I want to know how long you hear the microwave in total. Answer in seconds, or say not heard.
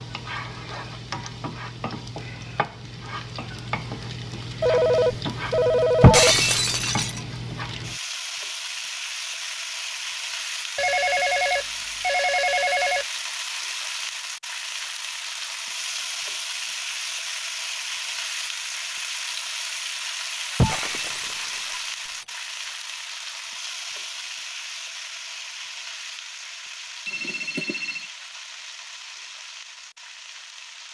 not heard.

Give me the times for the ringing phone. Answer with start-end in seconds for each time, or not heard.
4.6-6.3, 10.8-13.1, 27.1-28.1.